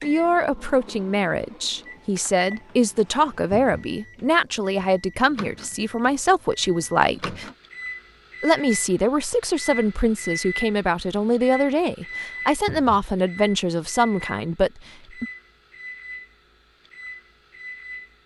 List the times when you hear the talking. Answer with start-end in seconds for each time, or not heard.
0.0-7.5, 8.4-15.2.